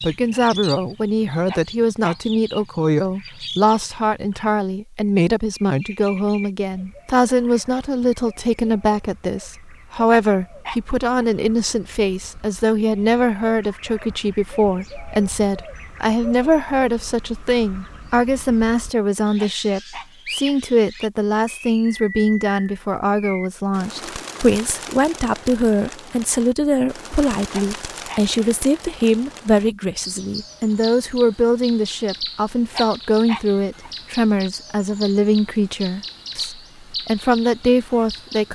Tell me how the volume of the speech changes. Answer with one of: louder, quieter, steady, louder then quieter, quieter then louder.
steady.